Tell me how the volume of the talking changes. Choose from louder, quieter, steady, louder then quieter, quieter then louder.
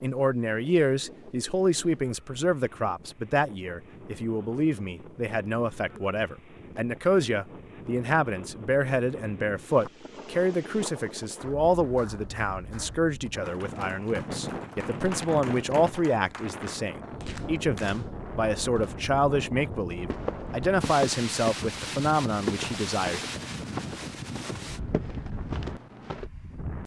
steady.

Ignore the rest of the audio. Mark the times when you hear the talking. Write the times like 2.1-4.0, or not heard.
0.0-23.2.